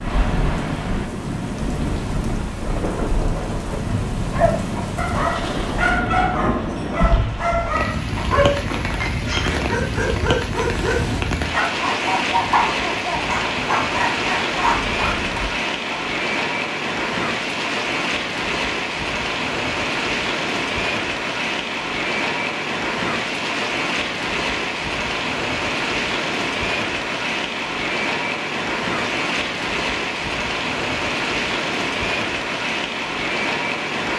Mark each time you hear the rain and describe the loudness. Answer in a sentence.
The rain can be heard from 0.0 to 34.1 s, at a steady volume.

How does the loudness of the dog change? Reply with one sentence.
The volume of the dog stays about the same.